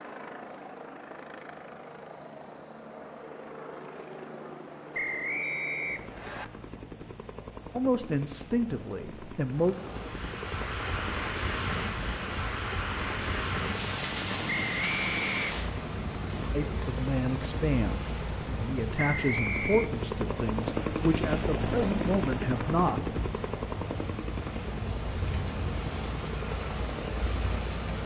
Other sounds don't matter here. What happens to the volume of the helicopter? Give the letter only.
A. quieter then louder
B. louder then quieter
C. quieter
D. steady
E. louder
E.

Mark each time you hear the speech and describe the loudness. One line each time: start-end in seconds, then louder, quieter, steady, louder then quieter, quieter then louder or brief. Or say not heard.
7.8-9.8 brief
16.5-23.1 steady.